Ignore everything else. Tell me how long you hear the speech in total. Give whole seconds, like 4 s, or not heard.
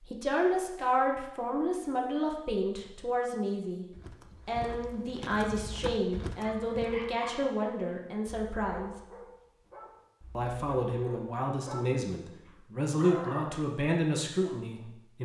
14 s.